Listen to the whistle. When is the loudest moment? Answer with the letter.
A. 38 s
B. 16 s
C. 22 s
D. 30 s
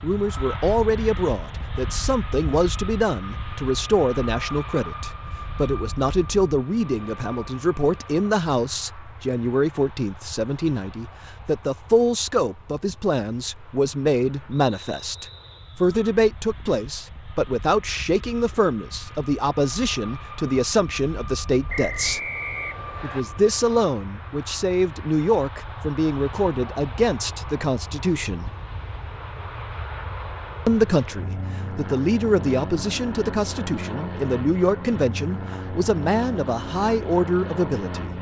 C.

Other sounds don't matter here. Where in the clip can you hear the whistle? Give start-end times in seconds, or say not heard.
14.8-15.8, 21.6-23.2.